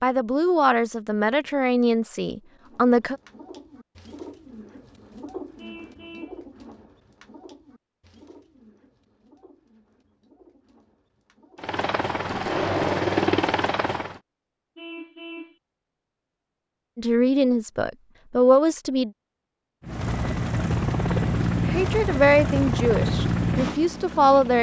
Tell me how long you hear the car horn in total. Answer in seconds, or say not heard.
2 s.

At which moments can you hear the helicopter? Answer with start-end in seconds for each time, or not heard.
11.6-14.2, 19.8-24.5.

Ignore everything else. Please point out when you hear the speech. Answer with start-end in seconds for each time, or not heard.
0.0-3.1, 16.9-19.1, 21.6-24.5.